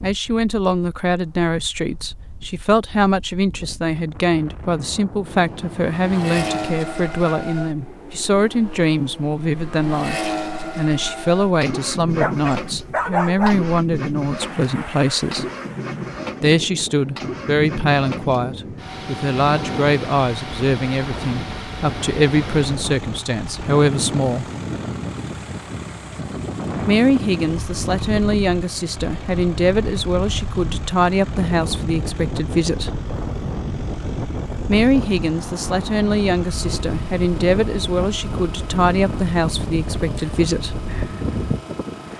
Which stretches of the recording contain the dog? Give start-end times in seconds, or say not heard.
12.0-13.6.